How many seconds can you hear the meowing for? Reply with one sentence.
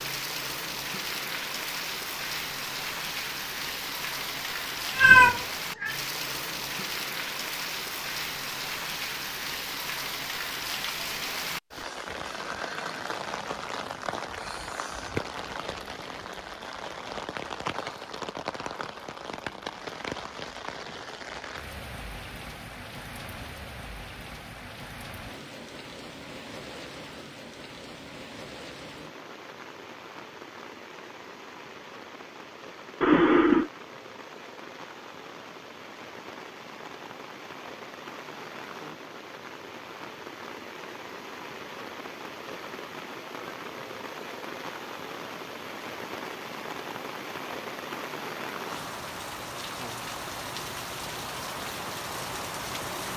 You can hear the meowing for 2 seconds altogether.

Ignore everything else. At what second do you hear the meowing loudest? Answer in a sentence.
The volume of the meowing peaks at 5 seconds.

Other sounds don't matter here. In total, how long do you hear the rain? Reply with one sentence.
The rain can be heard for 53 seconds in total.